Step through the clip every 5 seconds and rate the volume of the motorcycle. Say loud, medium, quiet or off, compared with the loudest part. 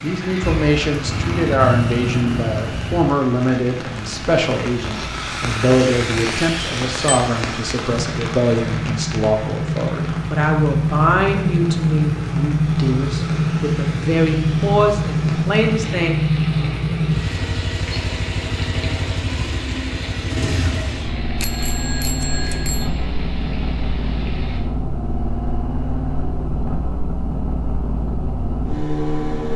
medium, medium, loud, loud, medium, medium.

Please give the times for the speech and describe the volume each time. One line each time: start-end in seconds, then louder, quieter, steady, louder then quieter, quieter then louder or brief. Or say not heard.
0.0-16.2 steady.